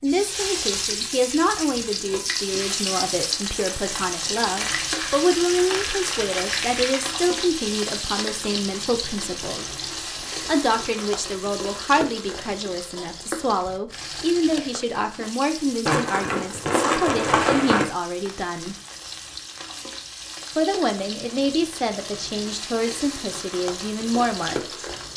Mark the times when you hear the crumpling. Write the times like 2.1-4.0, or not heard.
4.5-7.0, 15.8-17.9.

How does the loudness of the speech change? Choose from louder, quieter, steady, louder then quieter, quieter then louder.
steady.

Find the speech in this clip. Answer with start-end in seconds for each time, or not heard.
0.0-18.8, 20.6-24.6.